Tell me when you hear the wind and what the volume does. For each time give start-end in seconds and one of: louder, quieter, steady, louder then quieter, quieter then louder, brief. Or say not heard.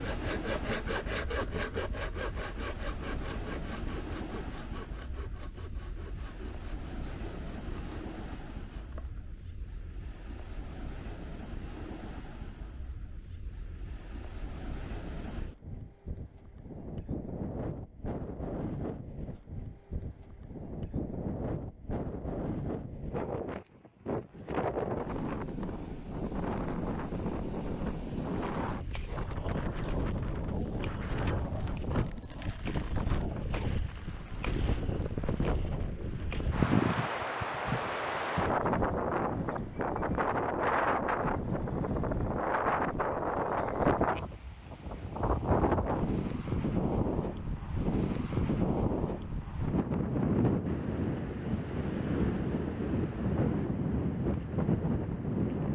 0.0-55.7 louder.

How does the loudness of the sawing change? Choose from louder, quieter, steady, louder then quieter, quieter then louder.
quieter.